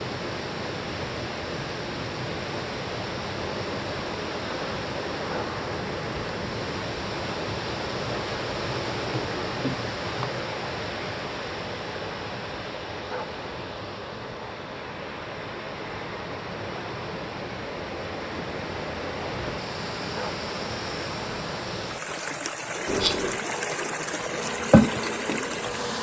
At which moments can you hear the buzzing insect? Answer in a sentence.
The buzzing insect can be heard from 22.9 to 25.9 s.